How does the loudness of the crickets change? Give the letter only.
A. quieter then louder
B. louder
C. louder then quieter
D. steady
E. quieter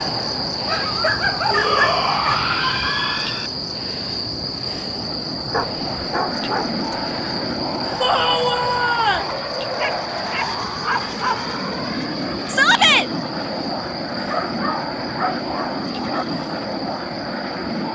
E.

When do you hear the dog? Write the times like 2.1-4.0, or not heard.
0.7-2.5, 5.5-6.8, 9.8-11.4, 14.2-16.2.